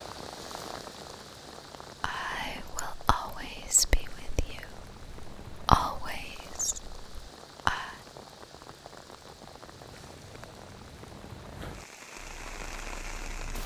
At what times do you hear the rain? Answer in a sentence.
You can hear the rain from 0.0 to 13.6 s.